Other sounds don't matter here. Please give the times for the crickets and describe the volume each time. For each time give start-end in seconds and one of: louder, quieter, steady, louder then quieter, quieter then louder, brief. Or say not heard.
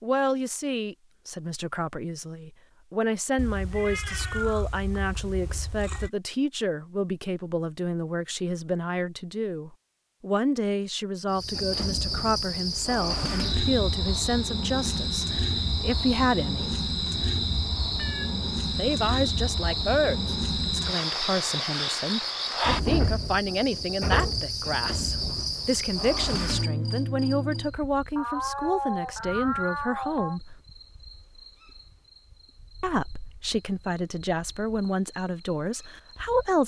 11.3-36.6 quieter.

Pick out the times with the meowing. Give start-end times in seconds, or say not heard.
3.4-6.1, 17.9-18.4, 27.8-30.4.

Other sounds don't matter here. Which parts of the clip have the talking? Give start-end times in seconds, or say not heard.
0.0-16.8, 18.8-30.6, 32.8-36.6.